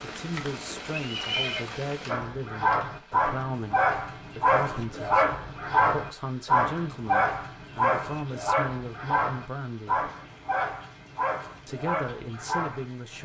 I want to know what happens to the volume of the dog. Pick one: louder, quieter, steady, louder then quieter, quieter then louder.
quieter.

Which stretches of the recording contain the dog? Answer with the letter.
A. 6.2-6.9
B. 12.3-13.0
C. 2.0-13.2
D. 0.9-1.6
C.